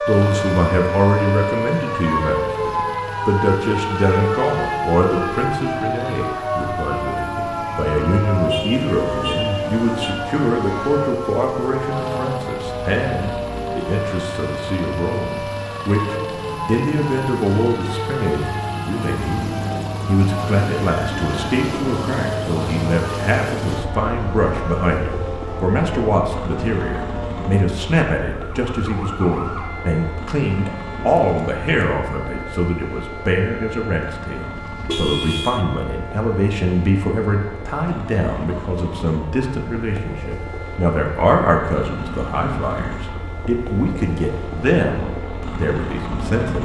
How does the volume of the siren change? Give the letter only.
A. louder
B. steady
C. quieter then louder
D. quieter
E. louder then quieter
D.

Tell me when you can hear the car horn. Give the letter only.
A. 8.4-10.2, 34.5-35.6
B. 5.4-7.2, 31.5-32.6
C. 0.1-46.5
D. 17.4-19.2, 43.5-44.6
A.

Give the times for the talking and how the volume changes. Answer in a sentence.
You can hear the talking from 0.1 to 46.5 s, at a steady volume.